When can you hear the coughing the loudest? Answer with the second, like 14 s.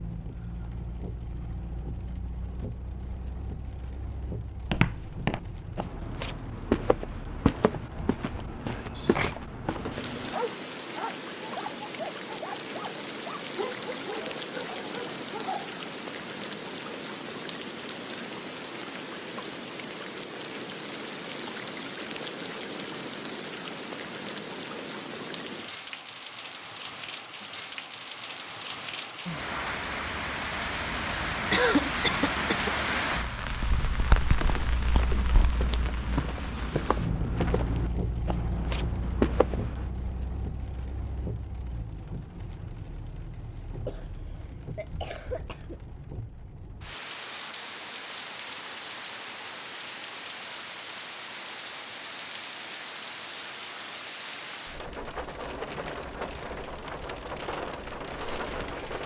32 s.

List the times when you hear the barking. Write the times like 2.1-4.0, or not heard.
10.3-15.8.